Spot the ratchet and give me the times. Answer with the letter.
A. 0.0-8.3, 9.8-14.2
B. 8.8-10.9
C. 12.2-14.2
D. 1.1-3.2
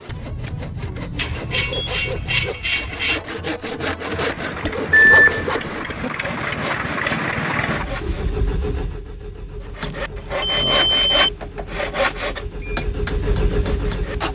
D.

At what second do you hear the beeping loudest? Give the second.
5 s.